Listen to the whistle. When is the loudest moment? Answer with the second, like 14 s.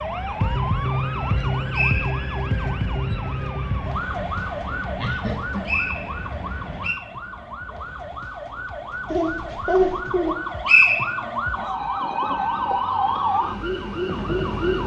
11 s.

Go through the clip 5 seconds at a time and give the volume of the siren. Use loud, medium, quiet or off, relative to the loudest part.
loud, medium, loud.